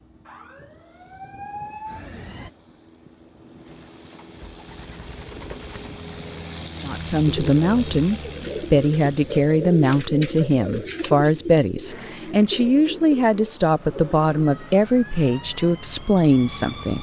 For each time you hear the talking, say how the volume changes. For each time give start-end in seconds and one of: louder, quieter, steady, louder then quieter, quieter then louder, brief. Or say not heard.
6.8-16.9 steady.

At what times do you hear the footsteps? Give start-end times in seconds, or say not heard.
not heard.